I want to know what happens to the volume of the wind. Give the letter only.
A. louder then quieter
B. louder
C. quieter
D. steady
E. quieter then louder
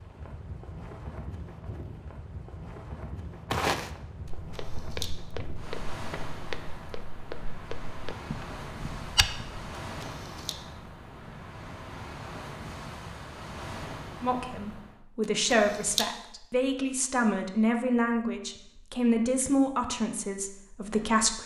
D.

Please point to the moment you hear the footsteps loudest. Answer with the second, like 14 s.
4 s.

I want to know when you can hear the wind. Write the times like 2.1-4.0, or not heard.
0.0-15.0.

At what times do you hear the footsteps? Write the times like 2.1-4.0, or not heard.
3.5-9.7.